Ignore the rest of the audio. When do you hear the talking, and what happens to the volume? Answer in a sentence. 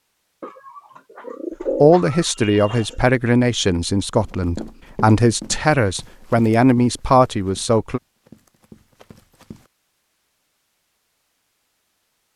The talking can be heard from 1.8 to 8.0 s, at a steady volume.